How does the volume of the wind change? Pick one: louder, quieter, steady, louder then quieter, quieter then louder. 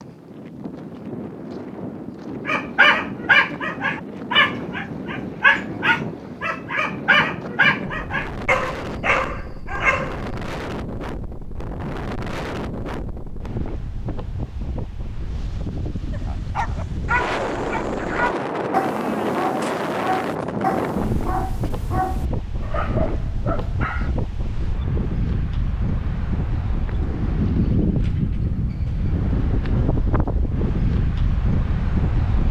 louder.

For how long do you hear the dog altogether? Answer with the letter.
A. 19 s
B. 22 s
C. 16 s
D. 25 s
C.